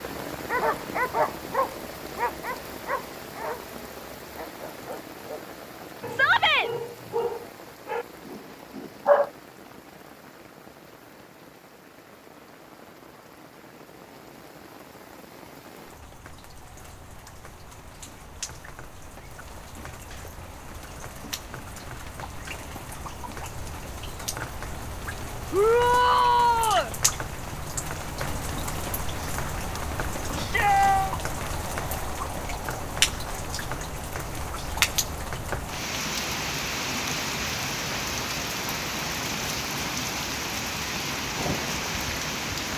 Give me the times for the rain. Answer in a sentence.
You can hear the rain from 0.0 to 42.7 s.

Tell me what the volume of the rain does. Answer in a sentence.
The volume of the rain goes down, then up.